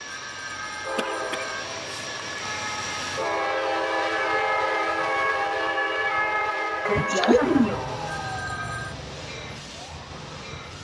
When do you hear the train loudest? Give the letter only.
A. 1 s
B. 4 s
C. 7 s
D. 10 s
B.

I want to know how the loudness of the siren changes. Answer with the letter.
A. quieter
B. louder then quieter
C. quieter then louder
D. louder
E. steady
B.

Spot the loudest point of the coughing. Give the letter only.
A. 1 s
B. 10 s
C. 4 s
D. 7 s
D.